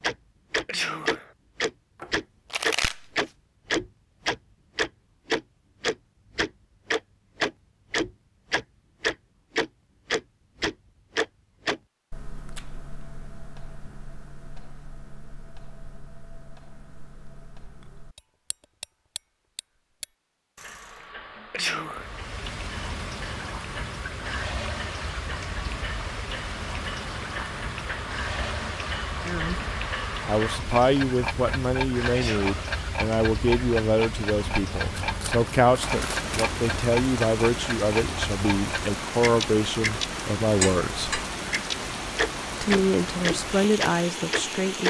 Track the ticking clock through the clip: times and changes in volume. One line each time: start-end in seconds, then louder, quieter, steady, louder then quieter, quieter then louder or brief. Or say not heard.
0.0-44.8 quieter then louder.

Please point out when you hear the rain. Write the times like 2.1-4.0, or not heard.
21.9-44.8.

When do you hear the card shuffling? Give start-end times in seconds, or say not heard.
2.0-3.3, 34.9-36.4.